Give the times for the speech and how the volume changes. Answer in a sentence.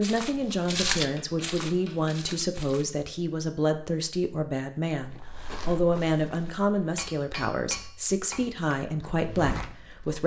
You can hear the speech from 0.0 to 10.2 s, at a steady volume.